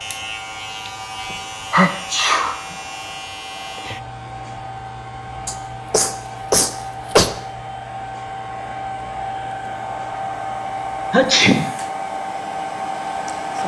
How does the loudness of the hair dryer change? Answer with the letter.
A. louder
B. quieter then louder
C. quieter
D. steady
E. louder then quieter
A.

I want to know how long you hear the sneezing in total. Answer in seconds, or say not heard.
4 s.